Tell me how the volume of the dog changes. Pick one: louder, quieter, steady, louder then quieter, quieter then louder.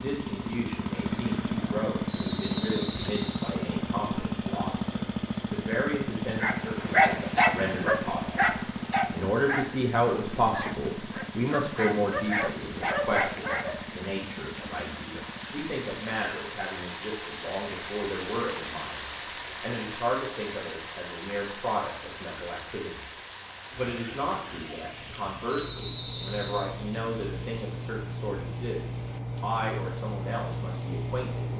quieter then louder.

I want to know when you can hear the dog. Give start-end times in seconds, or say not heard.
6.4-13.8.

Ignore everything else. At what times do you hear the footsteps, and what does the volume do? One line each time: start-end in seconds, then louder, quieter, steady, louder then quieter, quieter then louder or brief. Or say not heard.
not heard.